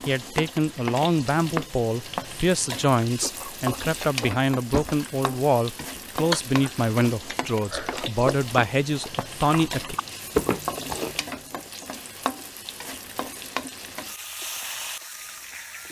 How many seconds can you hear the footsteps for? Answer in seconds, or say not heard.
not heard.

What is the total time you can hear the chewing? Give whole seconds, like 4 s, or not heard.
9 s.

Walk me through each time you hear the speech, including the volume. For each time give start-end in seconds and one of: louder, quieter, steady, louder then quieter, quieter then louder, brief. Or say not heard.
0.1-9.9 steady.